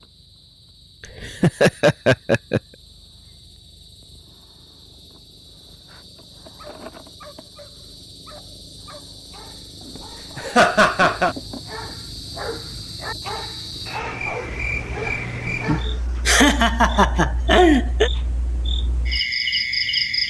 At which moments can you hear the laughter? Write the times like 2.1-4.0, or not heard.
1.2-2.6, 9.9-11.3, 16.2-18.1.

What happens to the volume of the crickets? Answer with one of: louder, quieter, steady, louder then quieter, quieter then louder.
louder.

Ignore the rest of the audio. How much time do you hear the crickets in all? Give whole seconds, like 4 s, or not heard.
20 s.